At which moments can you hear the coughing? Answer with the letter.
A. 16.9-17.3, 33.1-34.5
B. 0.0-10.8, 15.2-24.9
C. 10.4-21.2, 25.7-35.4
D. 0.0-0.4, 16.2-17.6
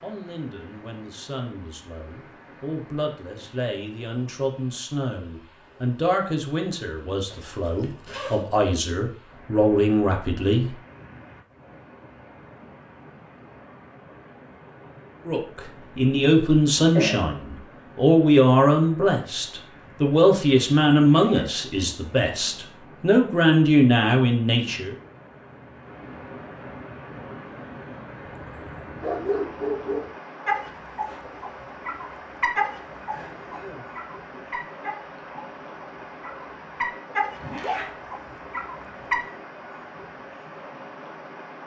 A.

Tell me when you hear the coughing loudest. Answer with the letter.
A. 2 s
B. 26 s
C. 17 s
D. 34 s
C.